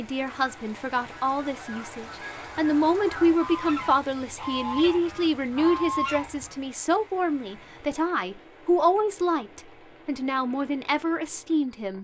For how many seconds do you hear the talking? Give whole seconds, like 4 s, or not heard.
12 s.